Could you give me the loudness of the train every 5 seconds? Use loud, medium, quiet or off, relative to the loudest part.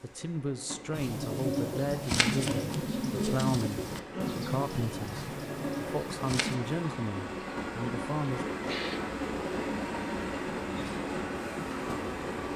medium, loud, loud.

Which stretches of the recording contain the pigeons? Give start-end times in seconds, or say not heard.
0.9-6.5.